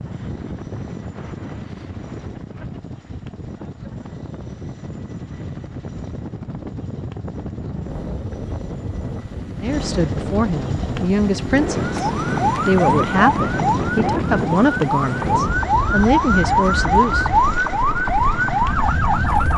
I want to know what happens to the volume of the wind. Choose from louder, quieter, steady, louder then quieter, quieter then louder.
louder.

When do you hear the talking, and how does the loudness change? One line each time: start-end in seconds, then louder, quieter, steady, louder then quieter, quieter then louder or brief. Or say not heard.
9.6-17.2 steady.